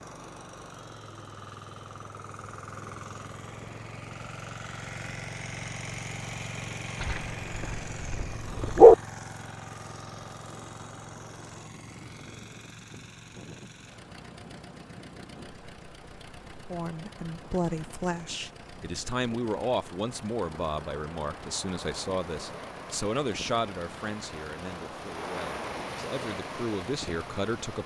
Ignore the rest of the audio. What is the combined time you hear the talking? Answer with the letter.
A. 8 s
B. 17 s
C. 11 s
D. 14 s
C.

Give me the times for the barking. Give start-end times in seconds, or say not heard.
7.0-8.9.